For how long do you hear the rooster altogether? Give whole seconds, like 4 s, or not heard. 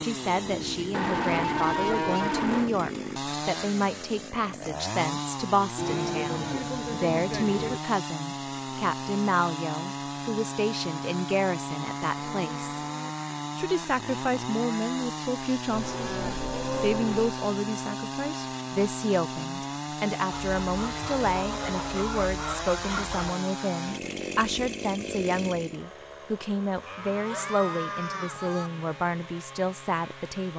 3 s.